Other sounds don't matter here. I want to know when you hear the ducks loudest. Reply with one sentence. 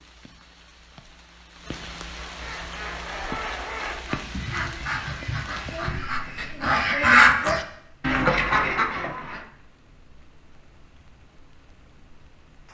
The loudest moment of the ducks is at 7 seconds.